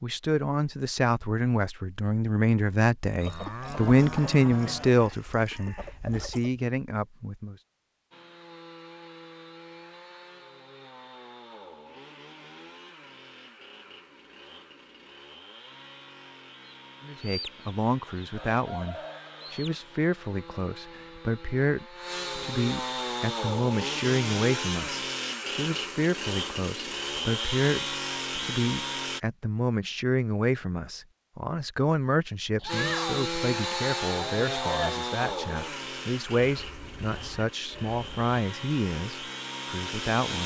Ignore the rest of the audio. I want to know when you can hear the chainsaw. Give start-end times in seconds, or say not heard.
8.1-29.2, 32.6-40.4.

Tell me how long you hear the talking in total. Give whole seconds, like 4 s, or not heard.
31 s.